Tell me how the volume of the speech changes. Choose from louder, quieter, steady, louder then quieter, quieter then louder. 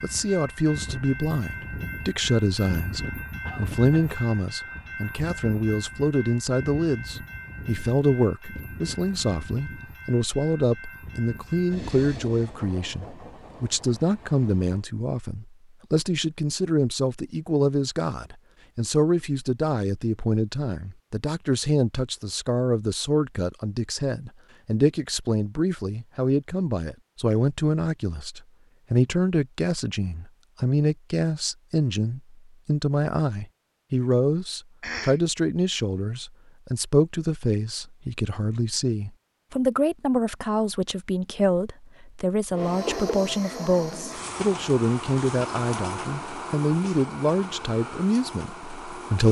steady.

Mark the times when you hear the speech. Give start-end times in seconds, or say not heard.
0.0-49.2.